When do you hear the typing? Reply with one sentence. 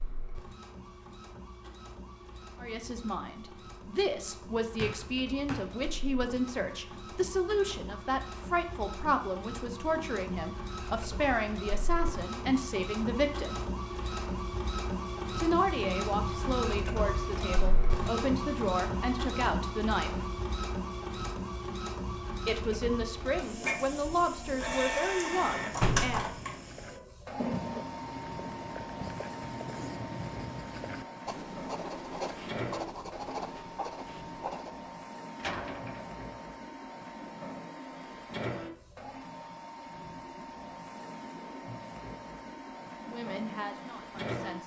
You can't hear the typing here.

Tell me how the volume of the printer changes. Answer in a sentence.
The volume of the printer goes up, then down.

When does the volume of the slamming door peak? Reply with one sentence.
The volume of the slamming door peaks at 26 seconds.